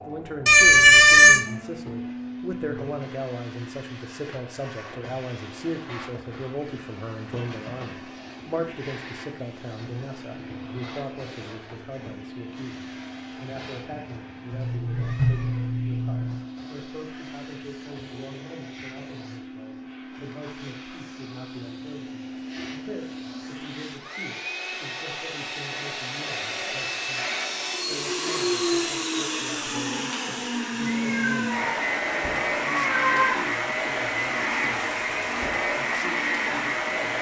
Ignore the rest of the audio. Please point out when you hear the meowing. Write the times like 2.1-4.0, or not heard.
0.5-1.4, 14.5-16.4, 30.8-33.4.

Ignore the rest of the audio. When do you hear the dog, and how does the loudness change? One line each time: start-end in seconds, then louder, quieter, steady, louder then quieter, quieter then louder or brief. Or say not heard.
not heard.